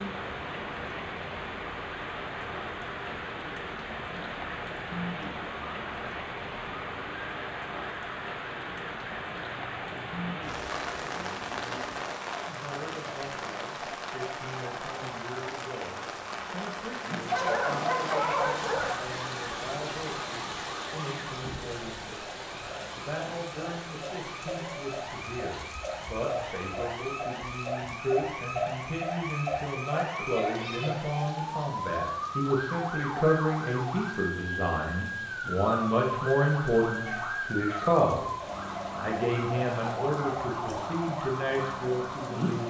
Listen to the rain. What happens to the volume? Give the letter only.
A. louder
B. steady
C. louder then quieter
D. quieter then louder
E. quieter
E.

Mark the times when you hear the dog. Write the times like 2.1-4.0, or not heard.
17.2-19.0, 36.9-38.0.